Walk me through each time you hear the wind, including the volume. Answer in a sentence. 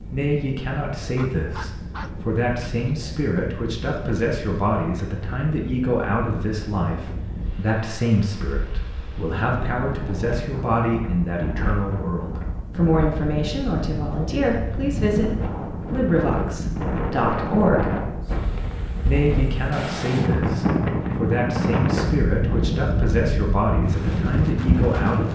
You can hear the wind from 0.0 to 25.2 s, getting louder.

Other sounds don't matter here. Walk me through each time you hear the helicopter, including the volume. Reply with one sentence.
You can't hear the helicopter here.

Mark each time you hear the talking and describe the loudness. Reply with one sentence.
The talking can be heard from 0.1 to 17.9 s, at a steady volume; and from 19.1 to 25.2 s, at a steady volume.